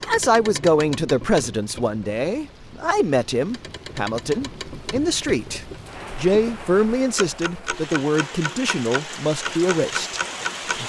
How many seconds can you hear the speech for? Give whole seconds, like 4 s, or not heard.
11 s.